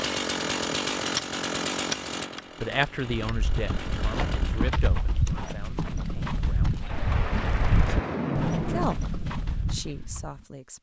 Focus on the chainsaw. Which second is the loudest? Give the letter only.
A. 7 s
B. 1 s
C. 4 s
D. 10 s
B.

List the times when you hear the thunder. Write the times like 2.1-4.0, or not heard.
6.8-8.8.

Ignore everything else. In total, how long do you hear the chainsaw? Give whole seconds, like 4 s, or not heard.
5 s.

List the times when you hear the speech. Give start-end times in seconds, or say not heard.
2.6-7.0, 8.7-10.7.